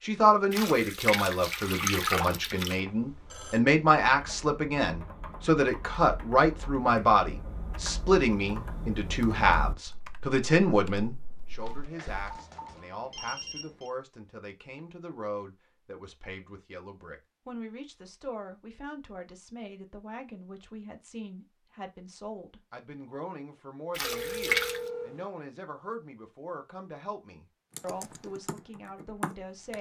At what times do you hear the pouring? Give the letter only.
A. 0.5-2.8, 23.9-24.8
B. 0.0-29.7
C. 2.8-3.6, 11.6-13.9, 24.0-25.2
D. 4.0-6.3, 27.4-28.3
A.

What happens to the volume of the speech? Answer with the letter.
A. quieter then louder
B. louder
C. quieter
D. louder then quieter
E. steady
C.